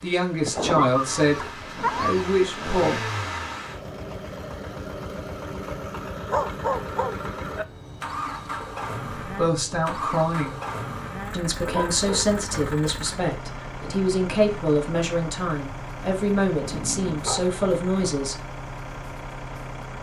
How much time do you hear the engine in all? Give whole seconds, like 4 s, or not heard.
20 s.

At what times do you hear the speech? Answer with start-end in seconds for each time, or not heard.
0.0-3.0, 9.2-10.6, 11.3-18.4.